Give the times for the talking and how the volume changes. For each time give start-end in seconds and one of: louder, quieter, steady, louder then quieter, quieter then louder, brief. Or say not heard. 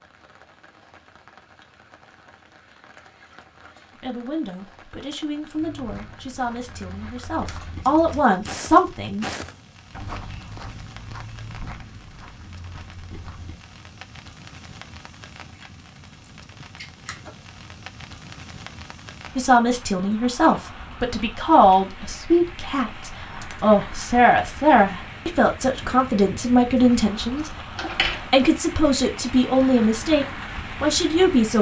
4.0-9.2 louder
19.4-31.5 steady.